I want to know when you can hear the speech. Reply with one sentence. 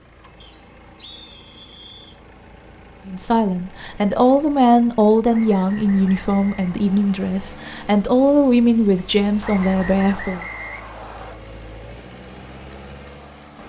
You can hear the speech from 3.0 to 10.4 s.